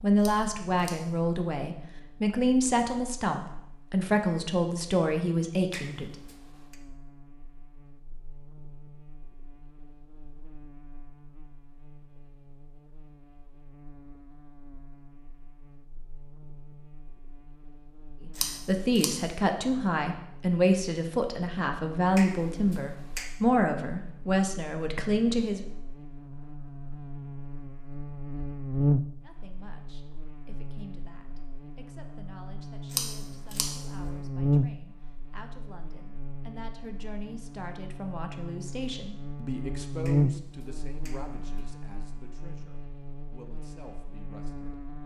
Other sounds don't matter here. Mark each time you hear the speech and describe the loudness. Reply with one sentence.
You can hear the speech from 0.0 to 6.1 s, at a steady volume; from 18.2 to 25.6 s, at a steady volume; and from 29.2 to 44.8 s, getting louder then quieter.